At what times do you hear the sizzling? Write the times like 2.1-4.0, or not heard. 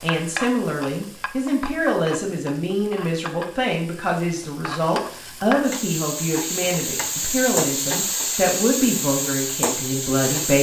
0.0-10.5.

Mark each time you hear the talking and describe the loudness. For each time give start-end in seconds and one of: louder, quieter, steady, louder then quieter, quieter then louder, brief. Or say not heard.
0.0-10.5 steady.